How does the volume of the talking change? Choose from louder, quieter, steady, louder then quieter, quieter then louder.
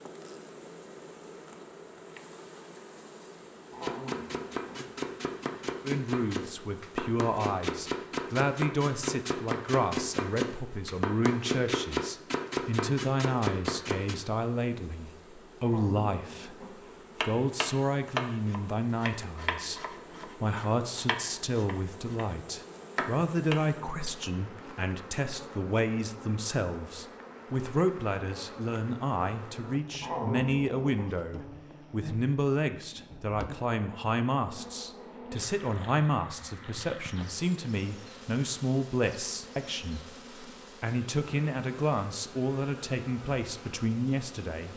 steady.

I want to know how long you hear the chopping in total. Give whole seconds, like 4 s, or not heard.
17 s.